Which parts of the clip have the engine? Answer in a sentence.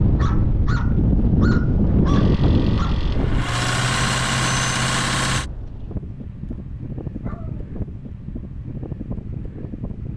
You can hear the engine from 2.0 to 5.5 s.